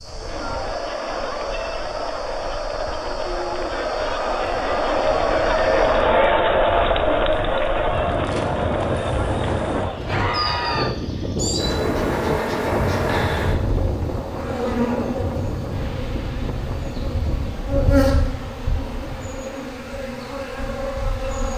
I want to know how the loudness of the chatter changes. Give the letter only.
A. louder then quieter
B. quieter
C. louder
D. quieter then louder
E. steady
A.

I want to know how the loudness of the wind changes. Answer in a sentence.
The loudness of the wind goes up, then down.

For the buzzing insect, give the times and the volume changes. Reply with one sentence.
The buzzing insect can be heard from 0.0 to 21.5 s, getting louder.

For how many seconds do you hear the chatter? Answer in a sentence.
The chatter can be heard for 11 seconds in total.